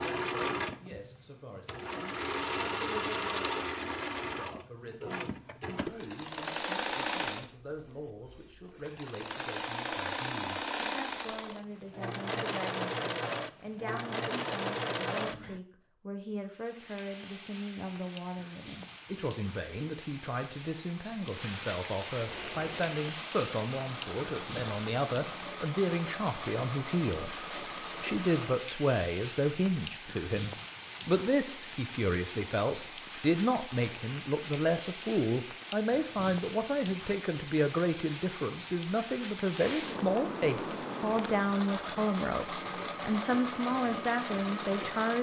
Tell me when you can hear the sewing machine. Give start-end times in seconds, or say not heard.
0.0-15.6, 22.2-28.6, 40.6-45.1.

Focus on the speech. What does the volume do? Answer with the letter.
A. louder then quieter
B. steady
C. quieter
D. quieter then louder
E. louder
E.